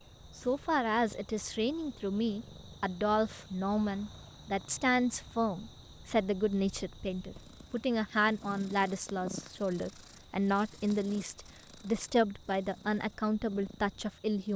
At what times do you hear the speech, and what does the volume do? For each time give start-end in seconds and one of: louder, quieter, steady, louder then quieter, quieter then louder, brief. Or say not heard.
0.3-14.5 steady.